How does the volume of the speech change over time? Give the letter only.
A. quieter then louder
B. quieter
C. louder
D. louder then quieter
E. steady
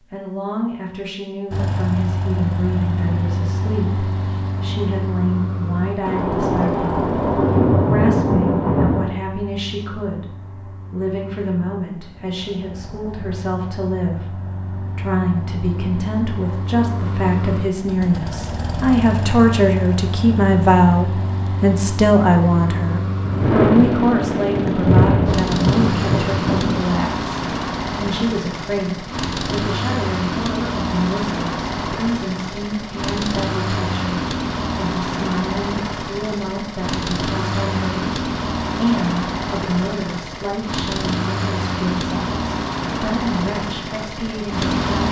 D.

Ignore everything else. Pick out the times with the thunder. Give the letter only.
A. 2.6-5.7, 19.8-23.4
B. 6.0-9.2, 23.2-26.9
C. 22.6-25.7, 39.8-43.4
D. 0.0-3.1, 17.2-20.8
B.